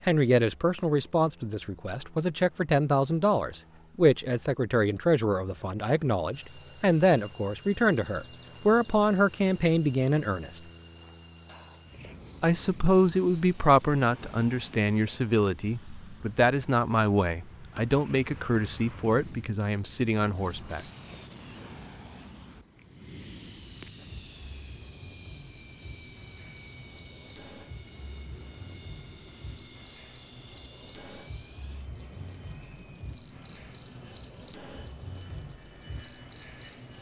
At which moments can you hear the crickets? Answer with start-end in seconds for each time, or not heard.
6.3-36.9.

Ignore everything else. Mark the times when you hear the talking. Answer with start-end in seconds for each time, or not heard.
0.1-10.6, 12.4-20.9.